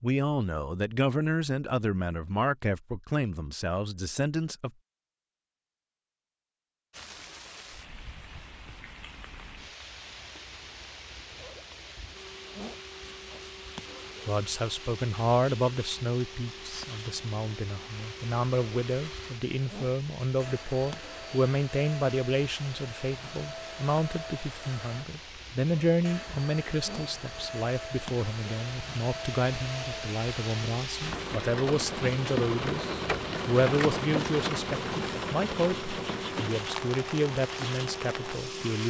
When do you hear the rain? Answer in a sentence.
You can hear the rain from 6.9 to 38.8 s.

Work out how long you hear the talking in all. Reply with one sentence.
The talking can be heard for 29 seconds in total.